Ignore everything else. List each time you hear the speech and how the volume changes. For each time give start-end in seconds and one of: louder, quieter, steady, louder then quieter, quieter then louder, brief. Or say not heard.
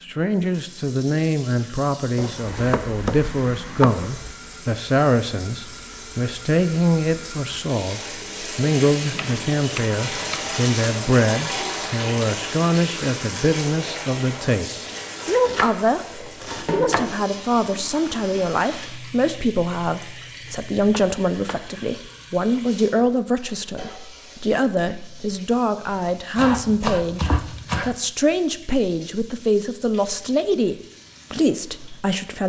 0.0-16.1 steady
16.7-32.4 steady.